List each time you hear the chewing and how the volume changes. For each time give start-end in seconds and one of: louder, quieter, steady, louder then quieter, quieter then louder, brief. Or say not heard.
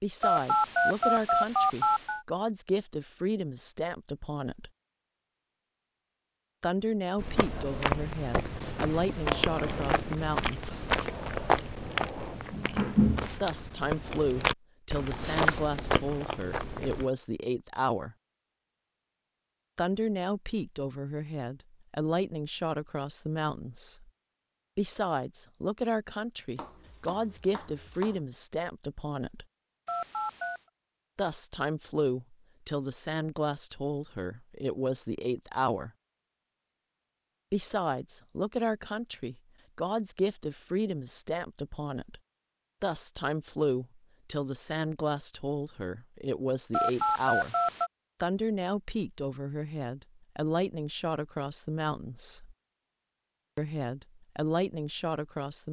7.2-17.1 steady.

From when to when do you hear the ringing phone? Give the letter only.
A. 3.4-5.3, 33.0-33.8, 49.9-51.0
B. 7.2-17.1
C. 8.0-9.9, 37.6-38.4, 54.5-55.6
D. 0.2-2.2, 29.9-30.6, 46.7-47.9
D.